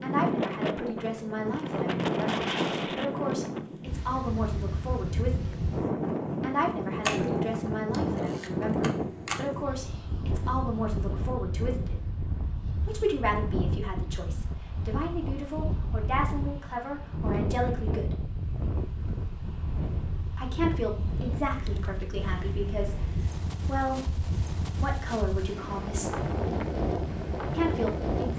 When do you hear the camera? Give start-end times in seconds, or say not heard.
7.0-9.5.